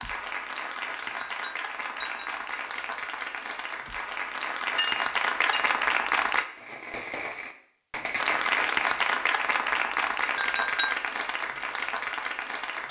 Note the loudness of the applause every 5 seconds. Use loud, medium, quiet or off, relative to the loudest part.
medium, loud, medium.